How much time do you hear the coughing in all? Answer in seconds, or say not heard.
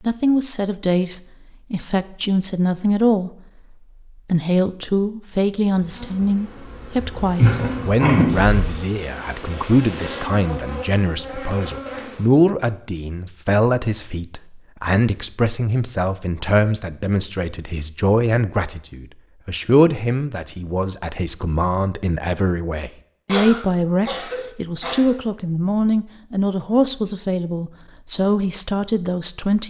3 s.